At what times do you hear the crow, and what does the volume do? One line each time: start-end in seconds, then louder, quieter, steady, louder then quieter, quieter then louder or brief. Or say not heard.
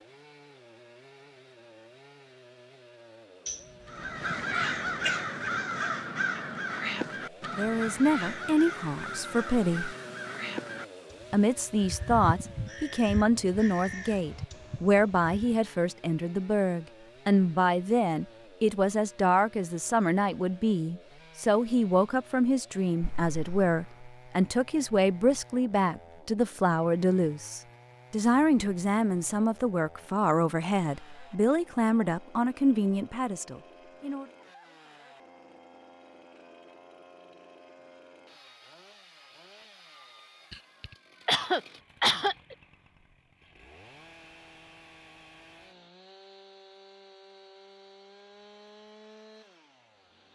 3.9-15.6 quieter.